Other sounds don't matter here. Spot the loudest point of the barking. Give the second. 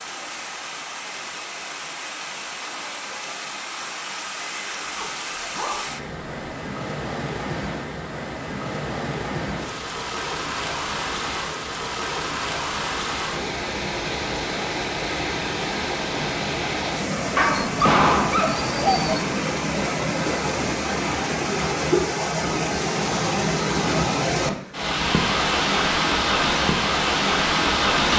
18 s.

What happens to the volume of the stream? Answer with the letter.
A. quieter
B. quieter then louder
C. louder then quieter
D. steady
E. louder
E.